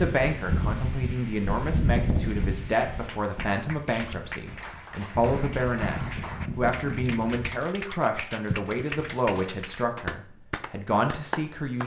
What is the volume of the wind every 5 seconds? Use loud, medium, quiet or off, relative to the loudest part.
loud, loud, off.